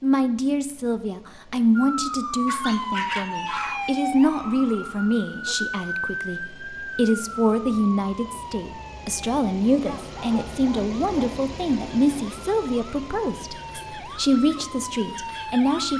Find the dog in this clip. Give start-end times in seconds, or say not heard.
2.5-3.9, 9.8-11.3.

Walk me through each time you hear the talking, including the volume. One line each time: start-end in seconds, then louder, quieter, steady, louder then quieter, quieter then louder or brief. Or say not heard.
0.0-15.9 steady.